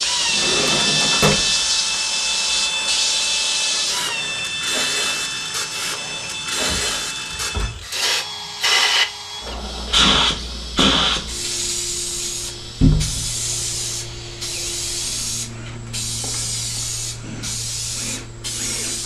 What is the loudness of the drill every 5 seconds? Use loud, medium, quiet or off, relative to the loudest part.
loud, medium, quiet, quiet.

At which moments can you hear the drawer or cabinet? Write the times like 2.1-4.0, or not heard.
0.2-2.0, 6.5-7.8, 12.8-13.3.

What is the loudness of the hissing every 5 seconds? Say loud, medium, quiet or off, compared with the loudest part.
loud, loud, loud, medium.